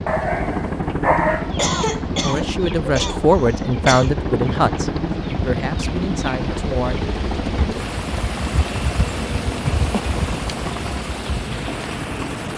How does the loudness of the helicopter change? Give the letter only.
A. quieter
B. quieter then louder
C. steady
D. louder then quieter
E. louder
A.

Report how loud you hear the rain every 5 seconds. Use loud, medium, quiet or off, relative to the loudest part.
medium, loud, loud.